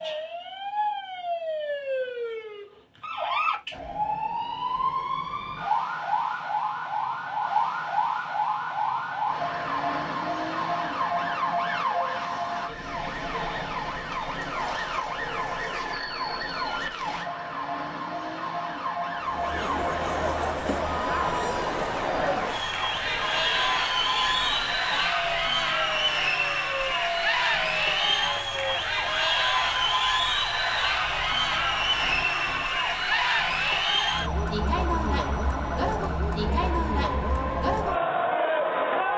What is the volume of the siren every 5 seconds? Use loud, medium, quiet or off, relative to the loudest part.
loud, loud, loud, loud, medium, medium, medium, medium.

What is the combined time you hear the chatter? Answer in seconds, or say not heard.
20 s.